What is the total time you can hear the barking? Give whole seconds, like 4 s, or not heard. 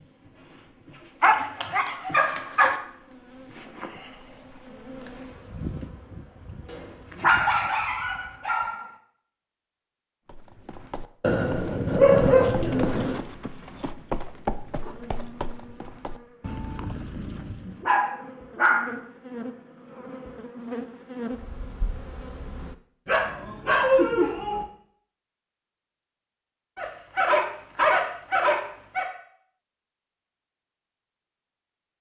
11 s.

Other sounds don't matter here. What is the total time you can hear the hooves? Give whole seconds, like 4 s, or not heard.
8 s.